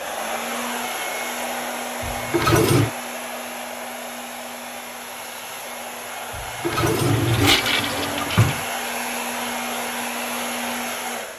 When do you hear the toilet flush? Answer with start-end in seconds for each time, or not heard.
2.0-2.9, 6.3-8.7.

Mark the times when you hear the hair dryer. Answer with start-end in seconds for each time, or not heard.
0.0-11.3.